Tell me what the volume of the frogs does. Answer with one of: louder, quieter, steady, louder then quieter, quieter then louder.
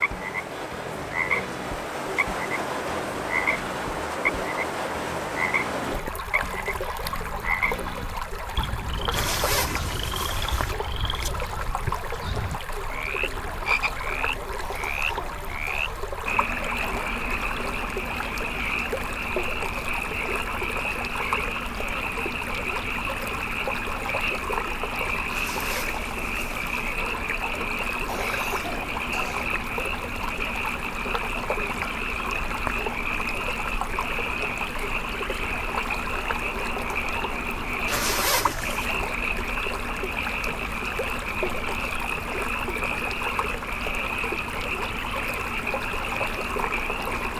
steady.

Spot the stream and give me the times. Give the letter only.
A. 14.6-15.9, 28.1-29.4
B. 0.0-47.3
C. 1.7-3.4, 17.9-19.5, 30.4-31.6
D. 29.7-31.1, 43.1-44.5
B.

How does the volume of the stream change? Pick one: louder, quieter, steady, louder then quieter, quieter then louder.
steady.